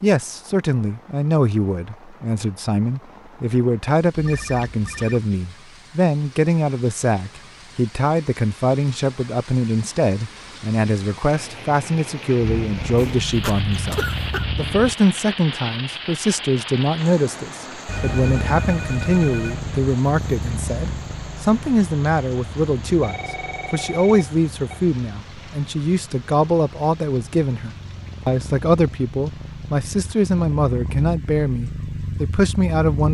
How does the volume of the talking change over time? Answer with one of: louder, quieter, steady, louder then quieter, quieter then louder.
steady.